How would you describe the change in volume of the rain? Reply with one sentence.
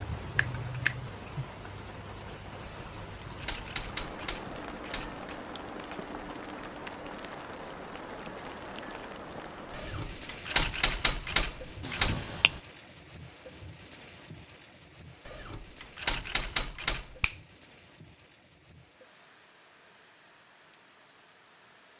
The loudness of the rain goes down.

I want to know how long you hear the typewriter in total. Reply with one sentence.
You can hear the typewriter for 7 seconds altogether.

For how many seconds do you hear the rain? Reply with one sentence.
You can hear the rain for 22 seconds altogether.